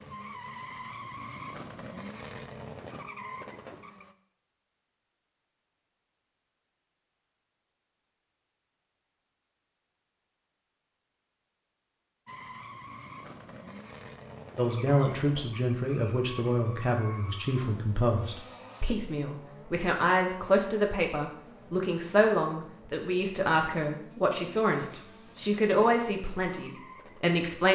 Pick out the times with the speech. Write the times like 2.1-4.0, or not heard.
14.6-27.7.